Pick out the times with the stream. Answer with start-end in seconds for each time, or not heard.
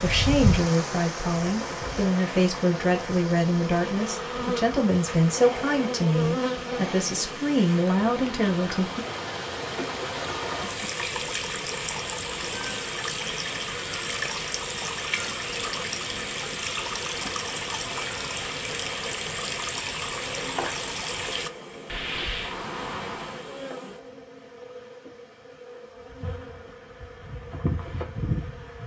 0.0-23.6.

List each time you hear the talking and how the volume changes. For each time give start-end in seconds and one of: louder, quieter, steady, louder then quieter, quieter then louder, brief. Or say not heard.
0.0-9.1 steady.